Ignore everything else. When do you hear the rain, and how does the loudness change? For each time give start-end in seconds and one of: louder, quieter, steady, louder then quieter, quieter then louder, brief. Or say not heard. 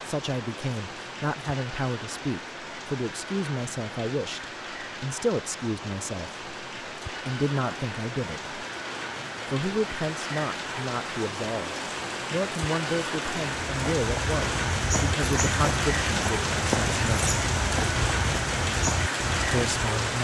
0.0-20.1 louder.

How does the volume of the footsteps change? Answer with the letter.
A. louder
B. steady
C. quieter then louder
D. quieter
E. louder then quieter
B.